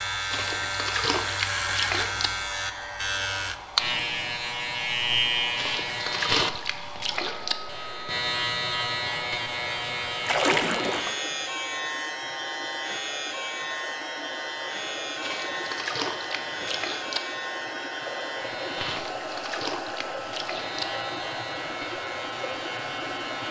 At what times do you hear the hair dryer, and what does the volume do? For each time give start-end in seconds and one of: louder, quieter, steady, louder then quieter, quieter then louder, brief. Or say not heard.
0.0-23.4 louder.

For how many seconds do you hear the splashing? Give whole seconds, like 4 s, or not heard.
9 s.